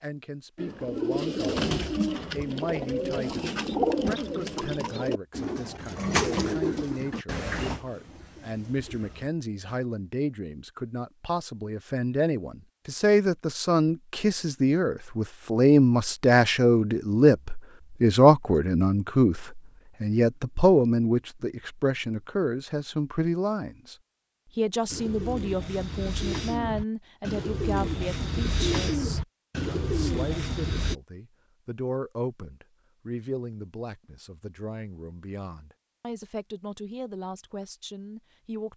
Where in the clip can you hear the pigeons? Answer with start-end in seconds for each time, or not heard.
0.6-9.8, 24.9-30.9.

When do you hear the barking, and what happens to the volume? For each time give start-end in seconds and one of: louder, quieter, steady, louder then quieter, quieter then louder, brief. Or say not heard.
not heard.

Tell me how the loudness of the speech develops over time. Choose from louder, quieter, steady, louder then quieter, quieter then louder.
louder then quieter.